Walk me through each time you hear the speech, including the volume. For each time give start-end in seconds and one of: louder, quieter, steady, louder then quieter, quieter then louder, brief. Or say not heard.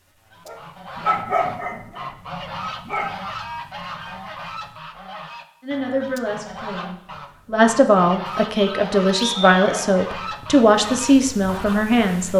5.6-12.3 louder.